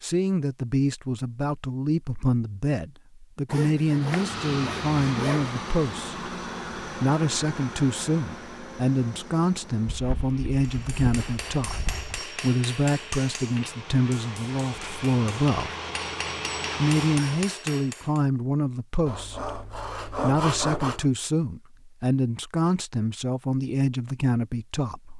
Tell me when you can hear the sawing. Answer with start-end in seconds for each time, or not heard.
3.5-5.5, 9.8-12.2, 19.1-21.1.